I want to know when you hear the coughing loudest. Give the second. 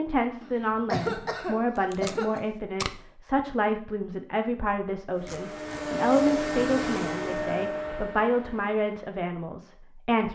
1 s.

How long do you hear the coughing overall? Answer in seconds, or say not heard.
2 s.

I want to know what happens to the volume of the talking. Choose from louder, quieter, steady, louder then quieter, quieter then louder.
steady.